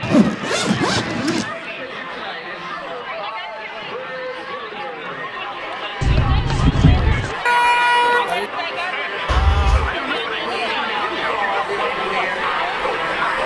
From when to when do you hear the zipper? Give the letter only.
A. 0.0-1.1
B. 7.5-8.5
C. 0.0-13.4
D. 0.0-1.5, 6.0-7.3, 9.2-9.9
D.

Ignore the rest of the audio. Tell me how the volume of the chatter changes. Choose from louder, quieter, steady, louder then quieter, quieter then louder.
louder.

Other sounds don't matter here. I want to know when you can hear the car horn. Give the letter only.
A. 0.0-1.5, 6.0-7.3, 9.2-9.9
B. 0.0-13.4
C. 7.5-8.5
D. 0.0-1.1
C.